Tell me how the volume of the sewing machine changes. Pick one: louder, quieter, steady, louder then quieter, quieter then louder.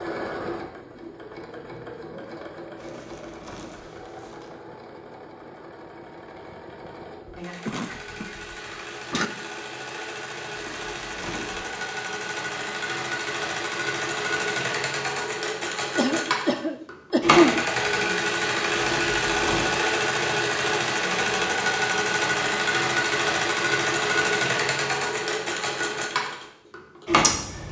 louder.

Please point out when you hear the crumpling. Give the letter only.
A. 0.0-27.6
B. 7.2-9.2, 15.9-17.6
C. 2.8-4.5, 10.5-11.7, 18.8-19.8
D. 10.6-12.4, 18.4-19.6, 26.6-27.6
C.